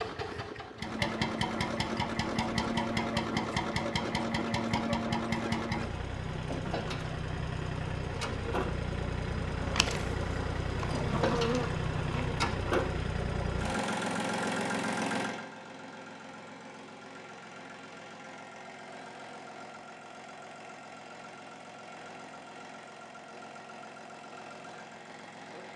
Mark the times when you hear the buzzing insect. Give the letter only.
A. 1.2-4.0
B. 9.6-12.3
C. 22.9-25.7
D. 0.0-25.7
B.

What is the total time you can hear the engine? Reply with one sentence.
You can hear the engine for 26 seconds altogether.